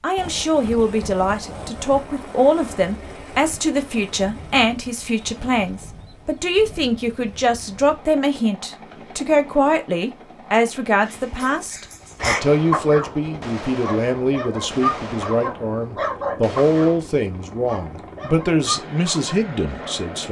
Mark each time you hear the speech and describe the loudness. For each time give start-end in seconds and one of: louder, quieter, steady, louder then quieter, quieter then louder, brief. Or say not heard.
0.0-20.2 steady.